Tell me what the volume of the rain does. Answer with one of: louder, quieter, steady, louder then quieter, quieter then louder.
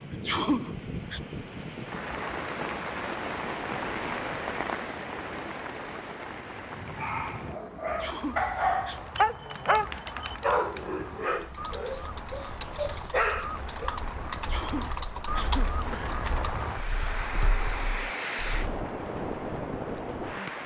quieter then louder.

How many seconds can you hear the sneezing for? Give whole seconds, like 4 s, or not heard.
4 s.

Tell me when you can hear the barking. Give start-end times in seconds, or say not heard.
7.0-13.9.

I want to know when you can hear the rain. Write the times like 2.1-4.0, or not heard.
0.0-20.6.